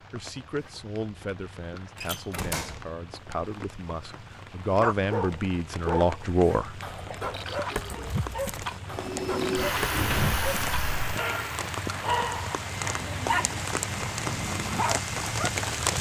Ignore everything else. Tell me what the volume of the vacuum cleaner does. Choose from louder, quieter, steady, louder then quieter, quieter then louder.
quieter.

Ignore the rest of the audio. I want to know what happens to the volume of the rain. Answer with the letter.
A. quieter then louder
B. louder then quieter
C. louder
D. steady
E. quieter
C.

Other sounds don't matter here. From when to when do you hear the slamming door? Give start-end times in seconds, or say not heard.
1.9-2.9, 9.7-11.2.